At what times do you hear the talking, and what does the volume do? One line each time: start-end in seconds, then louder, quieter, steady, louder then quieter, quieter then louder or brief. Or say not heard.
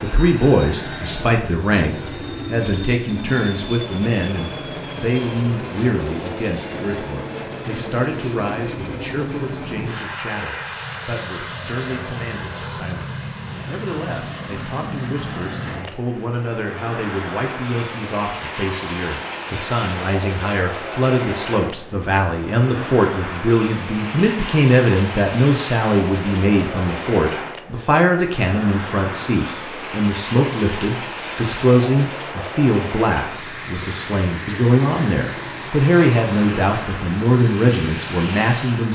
0.0-38.9 quieter then louder.